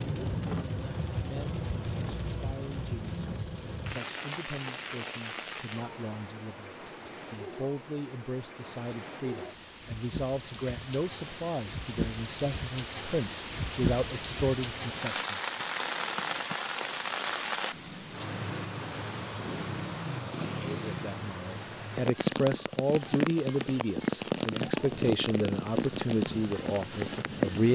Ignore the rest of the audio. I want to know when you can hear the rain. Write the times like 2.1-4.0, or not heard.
0.0-27.7.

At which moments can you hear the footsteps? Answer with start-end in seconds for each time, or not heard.
not heard.